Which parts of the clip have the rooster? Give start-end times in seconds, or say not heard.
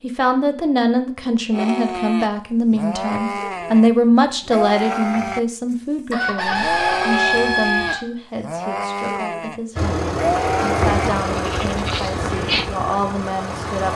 6.1-8.0.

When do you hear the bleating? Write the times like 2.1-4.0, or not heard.
1.5-12.7.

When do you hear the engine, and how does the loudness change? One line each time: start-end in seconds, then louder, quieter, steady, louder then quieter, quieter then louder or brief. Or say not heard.
9.8-13.9 quieter.